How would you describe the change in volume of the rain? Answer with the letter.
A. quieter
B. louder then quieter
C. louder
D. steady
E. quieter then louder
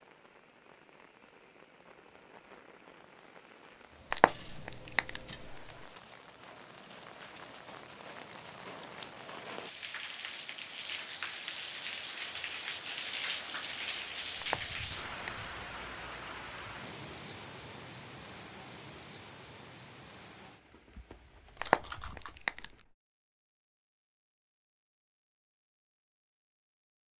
B.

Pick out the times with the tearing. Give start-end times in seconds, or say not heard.
4.1-5.8, 14.4-15.5, 21.6-22.8.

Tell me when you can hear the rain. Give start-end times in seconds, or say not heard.
0.0-22.9.